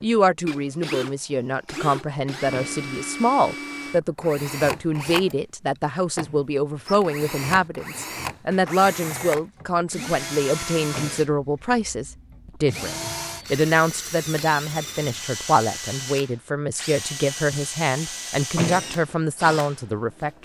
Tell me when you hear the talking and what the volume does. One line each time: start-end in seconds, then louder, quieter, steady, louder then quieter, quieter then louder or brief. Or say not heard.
0.0-20.4 steady.